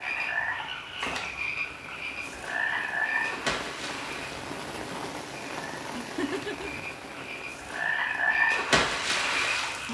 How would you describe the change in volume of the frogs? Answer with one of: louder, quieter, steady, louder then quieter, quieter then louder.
quieter then louder.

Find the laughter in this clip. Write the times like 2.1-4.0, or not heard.
6.0-6.8.